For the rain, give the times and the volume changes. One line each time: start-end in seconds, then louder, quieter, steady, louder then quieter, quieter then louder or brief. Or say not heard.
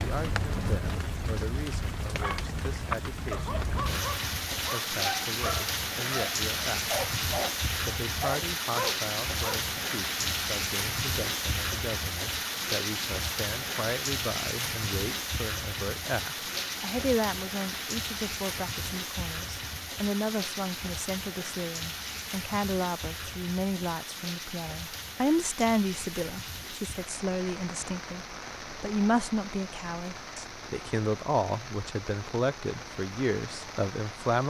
0.0-34.4 quieter.